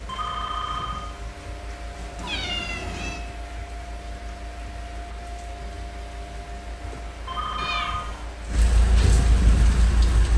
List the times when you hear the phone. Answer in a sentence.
You can hear the phone from 0.1 to 1.1 s and from 7.2 to 8.0 s.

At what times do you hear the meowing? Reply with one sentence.
You can hear the meowing from 2.1 to 3.2 s and from 7.5 to 8.2 s.